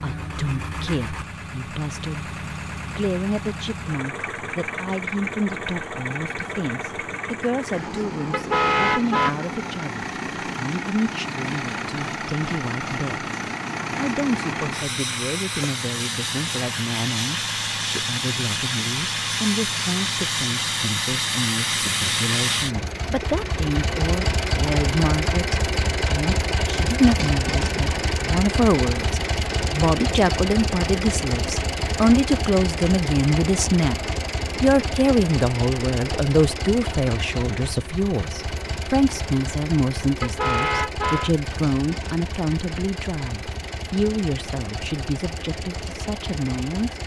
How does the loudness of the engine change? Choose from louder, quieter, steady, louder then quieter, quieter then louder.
louder then quieter.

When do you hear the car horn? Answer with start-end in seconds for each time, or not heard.
8.3-9.3, 40.2-41.4.